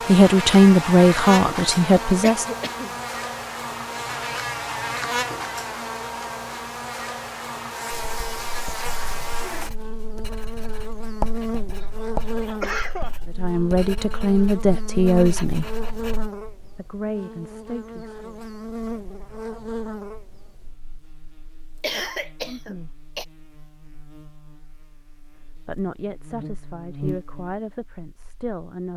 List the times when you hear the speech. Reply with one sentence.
You can hear the speech from 0.1 to 2.5 s, from 13.2 to 15.8 s, from 16.8 to 18.4 s, from 22.4 to 22.9 s and from 25.6 to 28.9 s.